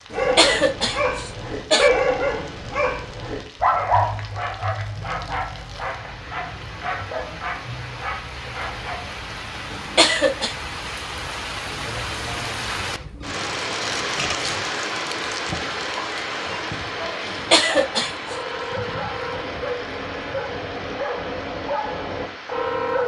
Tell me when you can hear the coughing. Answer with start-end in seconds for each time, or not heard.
0.1-1.9, 9.7-10.6, 17.2-18.4.